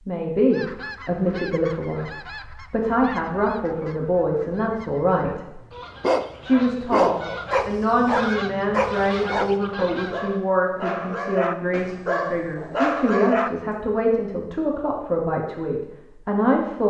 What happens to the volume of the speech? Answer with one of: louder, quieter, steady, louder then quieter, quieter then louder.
steady.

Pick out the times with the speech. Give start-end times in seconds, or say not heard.
0.1-5.6, 6.4-16.8.